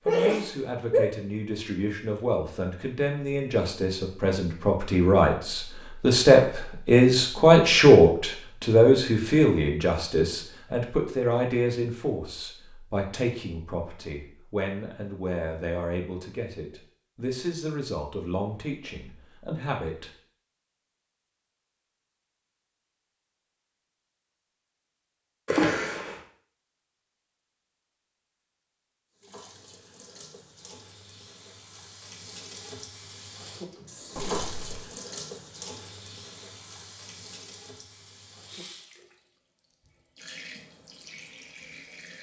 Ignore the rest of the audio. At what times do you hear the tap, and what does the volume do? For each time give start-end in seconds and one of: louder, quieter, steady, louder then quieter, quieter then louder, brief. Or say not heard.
29.1-42.1 louder then quieter.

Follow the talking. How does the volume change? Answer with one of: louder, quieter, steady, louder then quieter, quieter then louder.
louder then quieter.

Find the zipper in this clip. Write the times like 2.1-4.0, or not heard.
34.1-34.9.